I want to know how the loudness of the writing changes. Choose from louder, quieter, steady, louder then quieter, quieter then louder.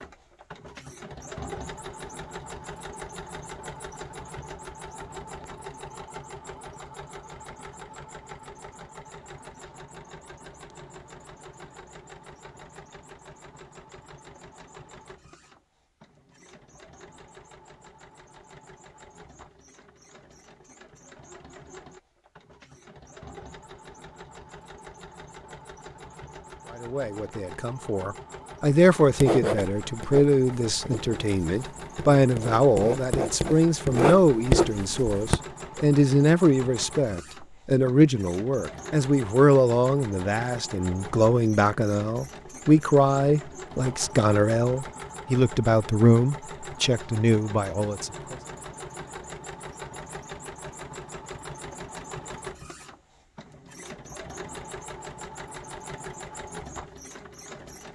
quieter then louder.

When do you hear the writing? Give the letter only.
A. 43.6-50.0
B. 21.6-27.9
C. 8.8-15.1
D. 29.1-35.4
D.